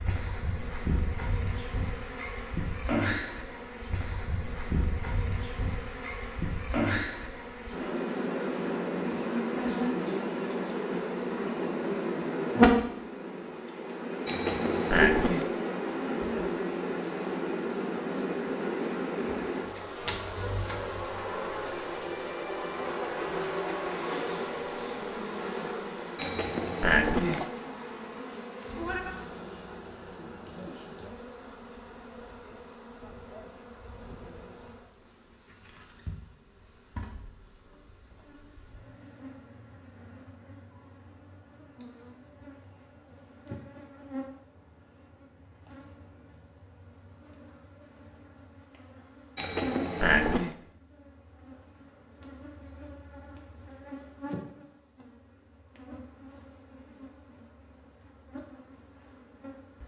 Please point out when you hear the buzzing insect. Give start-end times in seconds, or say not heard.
0.0-59.8.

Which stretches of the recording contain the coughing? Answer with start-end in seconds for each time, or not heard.
14.2-15.4, 26.1-27.5, 49.4-50.5.